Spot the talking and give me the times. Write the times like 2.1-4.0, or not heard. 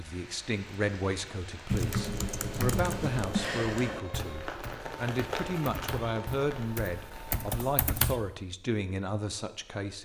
0.0-9.9.